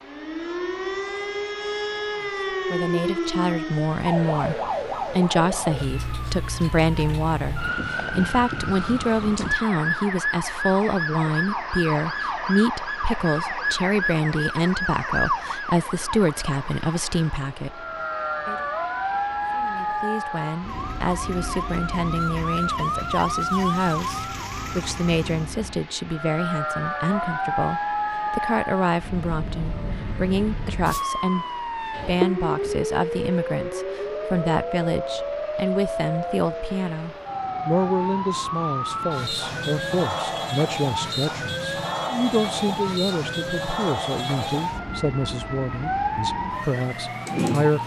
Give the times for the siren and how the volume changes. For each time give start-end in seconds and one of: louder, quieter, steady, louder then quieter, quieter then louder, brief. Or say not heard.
0.0-47.8 steady.